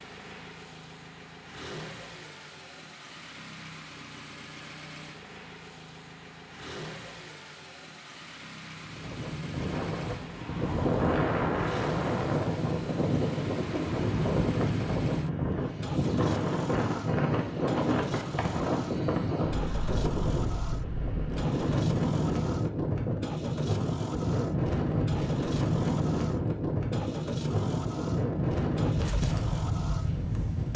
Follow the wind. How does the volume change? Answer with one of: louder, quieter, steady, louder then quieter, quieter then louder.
steady.